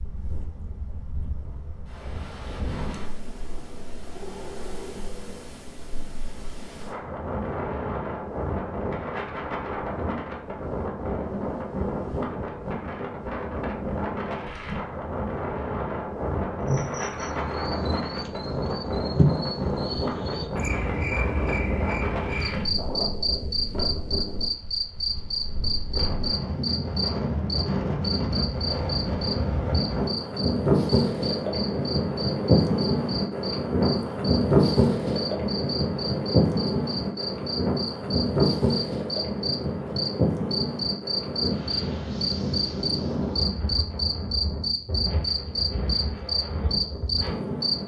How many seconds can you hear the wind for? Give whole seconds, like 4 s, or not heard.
48 s.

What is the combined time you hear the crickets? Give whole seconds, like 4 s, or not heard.
31 s.